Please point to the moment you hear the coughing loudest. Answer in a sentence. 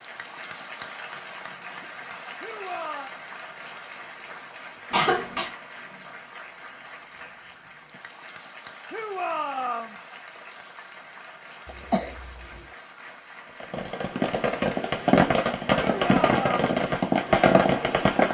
The loudest moment of the coughing is at 5 seconds.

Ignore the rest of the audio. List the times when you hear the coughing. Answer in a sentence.
The coughing can be heard from 4.9 to 5.5 s and from 11.7 to 12.6 s.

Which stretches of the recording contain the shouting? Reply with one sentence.
You can hear the shouting from 2.4 to 3.1 s, from 8.9 to 9.9 s and from 15.8 to 16.6 s.